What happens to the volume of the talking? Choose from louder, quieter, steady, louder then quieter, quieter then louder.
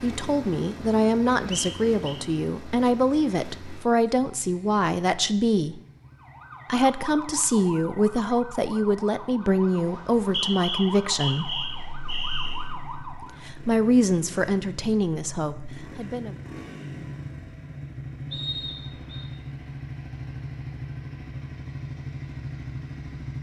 steady.